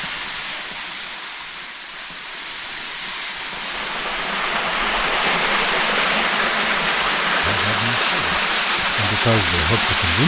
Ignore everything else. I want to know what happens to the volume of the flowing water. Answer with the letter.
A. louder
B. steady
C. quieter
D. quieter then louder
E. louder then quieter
A.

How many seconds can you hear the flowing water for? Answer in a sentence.
You can hear the flowing water for 10 seconds altogether.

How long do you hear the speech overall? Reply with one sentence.
The speech can be heard for 3 seconds in total.